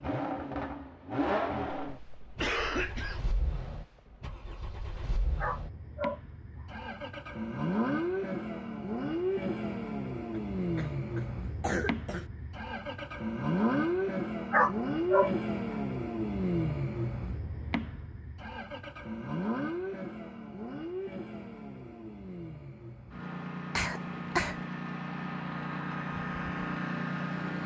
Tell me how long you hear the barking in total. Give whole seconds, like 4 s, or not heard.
2 s.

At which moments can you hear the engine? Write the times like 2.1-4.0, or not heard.
0.0-27.6.